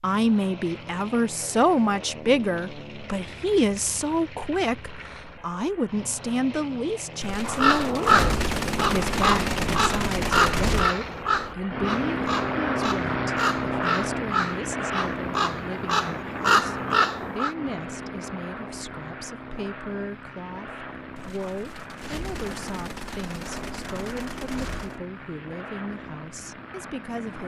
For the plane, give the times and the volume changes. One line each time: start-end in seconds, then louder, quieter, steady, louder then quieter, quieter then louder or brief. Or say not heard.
0.0-27.4 louder then quieter.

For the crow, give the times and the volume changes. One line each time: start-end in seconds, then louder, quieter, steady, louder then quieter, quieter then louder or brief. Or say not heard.
7.5-17.6 quieter then louder.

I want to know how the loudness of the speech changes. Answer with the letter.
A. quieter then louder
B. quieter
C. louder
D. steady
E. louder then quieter
B.